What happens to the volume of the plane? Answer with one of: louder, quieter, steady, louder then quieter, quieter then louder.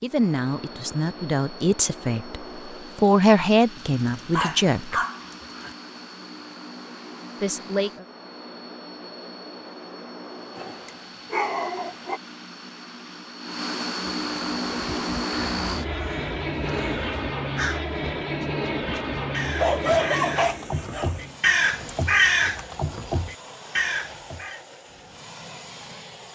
louder then quieter.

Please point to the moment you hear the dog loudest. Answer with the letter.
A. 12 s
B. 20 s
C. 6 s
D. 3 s
B.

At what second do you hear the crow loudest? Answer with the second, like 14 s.
22 s.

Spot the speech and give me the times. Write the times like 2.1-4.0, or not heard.
0.0-5.0, 7.4-8.1.